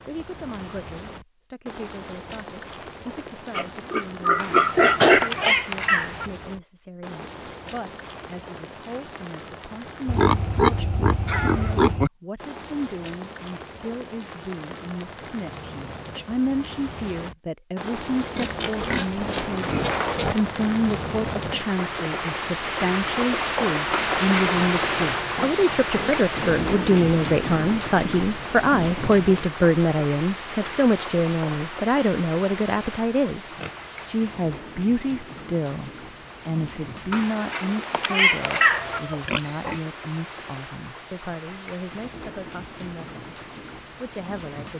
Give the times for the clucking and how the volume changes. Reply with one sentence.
You can't hear the clucking here.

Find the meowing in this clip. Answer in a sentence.
The meowing can be heard from 4.3 to 6.3 s, from 23.9 to 24.6 s and from 37.1 to 39.0 s.